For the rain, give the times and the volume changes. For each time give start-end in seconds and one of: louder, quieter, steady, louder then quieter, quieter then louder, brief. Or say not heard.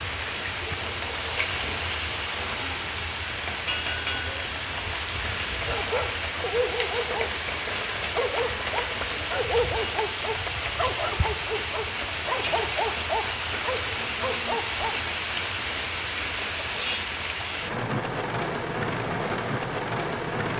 0.0-20.5 steady.